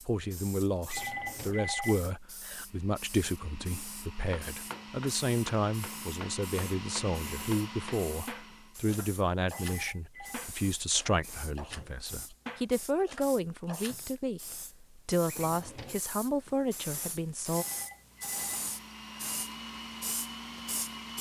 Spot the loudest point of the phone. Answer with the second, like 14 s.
2 s.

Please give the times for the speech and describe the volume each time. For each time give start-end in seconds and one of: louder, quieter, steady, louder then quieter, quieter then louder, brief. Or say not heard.
0.0-17.6 steady.